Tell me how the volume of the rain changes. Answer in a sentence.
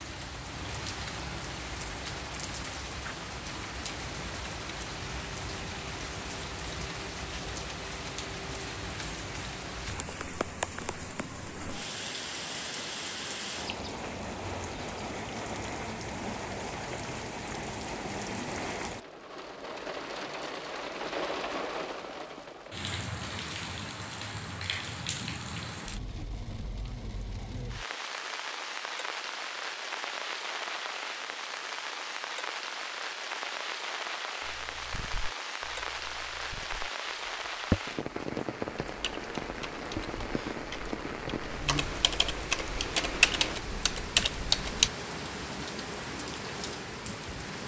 The loudness of the rain stays about the same.